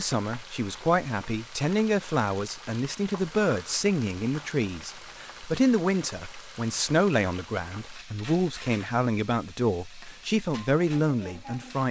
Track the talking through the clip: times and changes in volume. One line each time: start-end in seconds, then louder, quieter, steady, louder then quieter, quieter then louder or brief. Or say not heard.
0.0-11.8 steady.